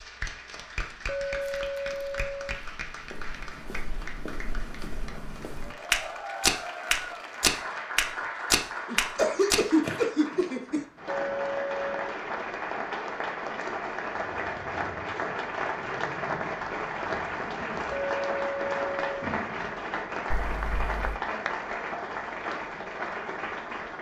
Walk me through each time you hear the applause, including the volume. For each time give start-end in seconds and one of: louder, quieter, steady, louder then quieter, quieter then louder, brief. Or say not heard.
0.0-23.9 louder.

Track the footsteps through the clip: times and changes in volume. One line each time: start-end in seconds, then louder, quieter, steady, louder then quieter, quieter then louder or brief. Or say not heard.
0.5-10.0 louder.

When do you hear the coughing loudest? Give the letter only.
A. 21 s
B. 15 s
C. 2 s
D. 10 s
D.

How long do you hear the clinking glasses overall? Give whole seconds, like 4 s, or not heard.
4 s.